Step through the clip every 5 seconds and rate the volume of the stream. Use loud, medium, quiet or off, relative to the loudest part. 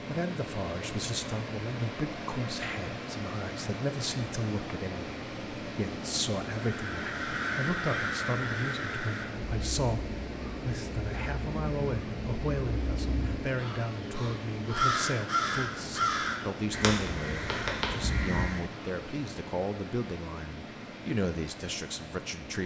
loud, loud, loud, loud, medium.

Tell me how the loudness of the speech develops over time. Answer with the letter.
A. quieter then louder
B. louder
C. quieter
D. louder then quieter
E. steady
E.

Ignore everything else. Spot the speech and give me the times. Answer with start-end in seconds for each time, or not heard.
0.1-22.6.